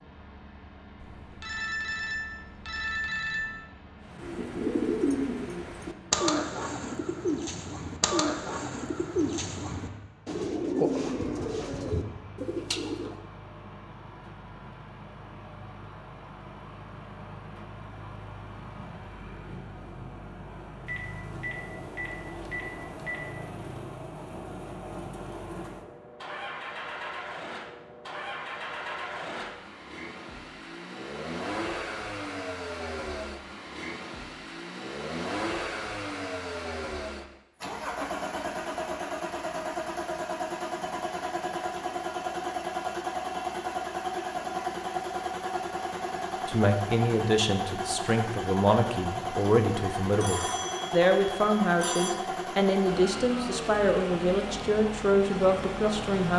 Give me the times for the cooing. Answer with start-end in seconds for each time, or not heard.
4.1-13.2.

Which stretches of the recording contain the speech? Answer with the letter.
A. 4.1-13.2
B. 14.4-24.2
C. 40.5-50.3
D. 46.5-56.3
D.